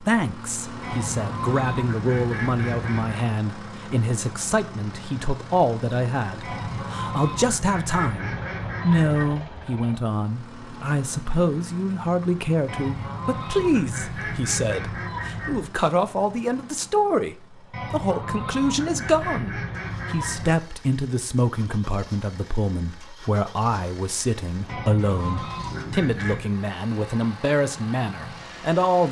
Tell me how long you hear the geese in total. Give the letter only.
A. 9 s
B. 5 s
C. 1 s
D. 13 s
D.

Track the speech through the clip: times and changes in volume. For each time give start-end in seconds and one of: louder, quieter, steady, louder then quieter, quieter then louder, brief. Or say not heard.
0.0-29.0 steady.